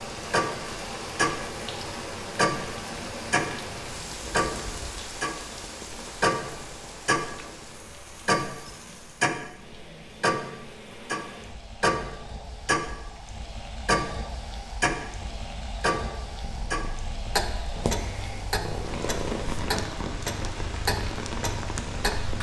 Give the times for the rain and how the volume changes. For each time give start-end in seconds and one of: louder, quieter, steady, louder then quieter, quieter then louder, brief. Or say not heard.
0.0-22.3 quieter then louder.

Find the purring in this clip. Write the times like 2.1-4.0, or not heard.
16.4-22.3.